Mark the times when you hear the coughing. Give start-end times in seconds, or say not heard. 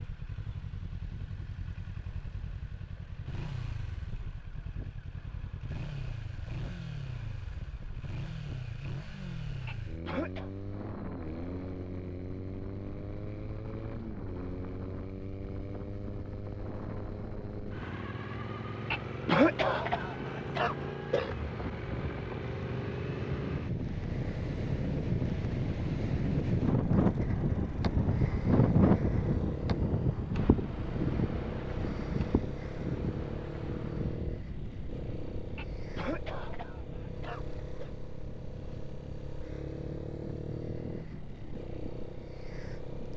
9.7-10.5, 18.9-21.4, 35.5-37.9.